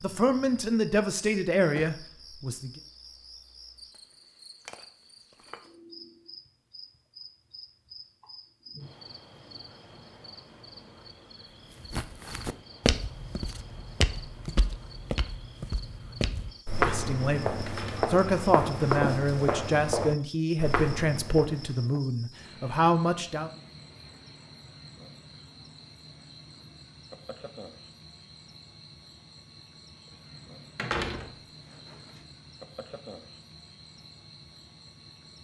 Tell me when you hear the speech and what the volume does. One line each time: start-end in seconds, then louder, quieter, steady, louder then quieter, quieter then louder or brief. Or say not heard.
0.0-2.7 brief
16.8-23.5 steady.